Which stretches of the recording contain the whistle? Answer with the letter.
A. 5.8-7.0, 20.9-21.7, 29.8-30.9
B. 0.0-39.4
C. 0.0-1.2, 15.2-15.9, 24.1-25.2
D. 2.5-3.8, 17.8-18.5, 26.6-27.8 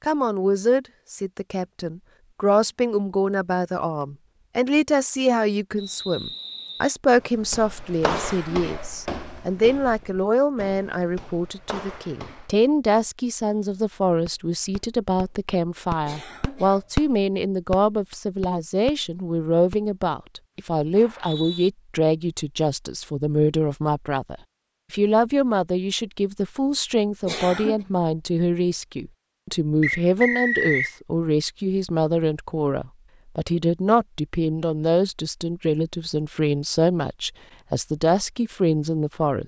A.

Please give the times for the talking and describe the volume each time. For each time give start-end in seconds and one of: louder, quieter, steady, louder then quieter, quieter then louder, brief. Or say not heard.
0.0-39.4 steady.